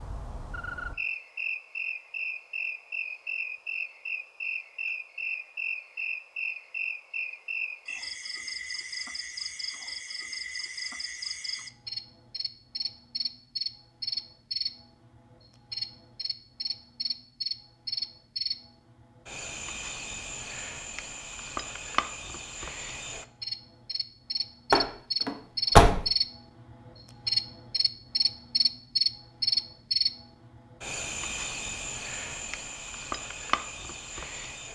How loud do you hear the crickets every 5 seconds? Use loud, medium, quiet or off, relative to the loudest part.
medium, medium, medium, medium, medium, loud, medium.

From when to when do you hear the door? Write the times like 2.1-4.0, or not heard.
24.7-26.1.